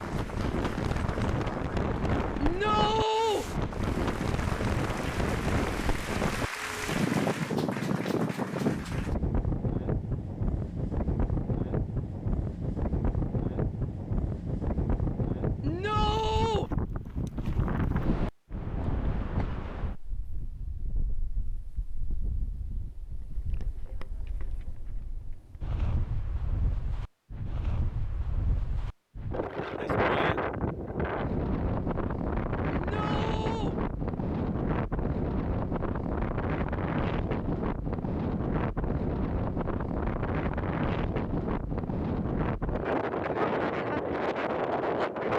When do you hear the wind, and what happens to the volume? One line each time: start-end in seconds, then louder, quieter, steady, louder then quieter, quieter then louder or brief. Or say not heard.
0.0-45.3 quieter then louder.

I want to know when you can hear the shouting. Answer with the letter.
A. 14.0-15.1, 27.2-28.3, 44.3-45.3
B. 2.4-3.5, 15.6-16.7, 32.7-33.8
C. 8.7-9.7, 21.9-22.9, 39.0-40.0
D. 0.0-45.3
B.